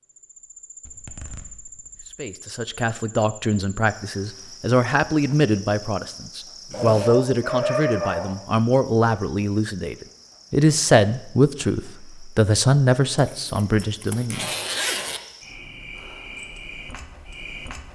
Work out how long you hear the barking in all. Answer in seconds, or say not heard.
2 s.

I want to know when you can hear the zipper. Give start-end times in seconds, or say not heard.
0.8-2.1, 6.7-7.2, 13.2-15.2.